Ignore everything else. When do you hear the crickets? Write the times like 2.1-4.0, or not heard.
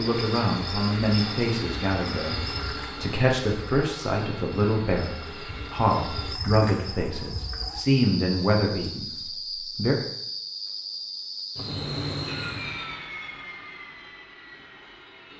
0.0-12.8.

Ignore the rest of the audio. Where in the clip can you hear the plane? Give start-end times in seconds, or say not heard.
0.0-6.3, 12.2-15.3.